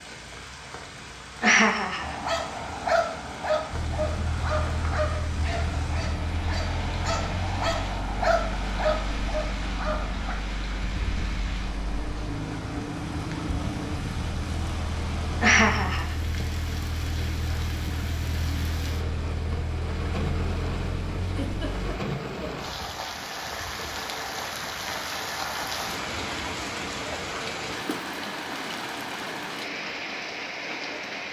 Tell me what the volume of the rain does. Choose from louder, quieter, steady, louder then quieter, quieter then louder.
louder.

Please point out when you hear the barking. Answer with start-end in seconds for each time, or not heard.
2.0-10.3.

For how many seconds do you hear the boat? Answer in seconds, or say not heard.
18 s.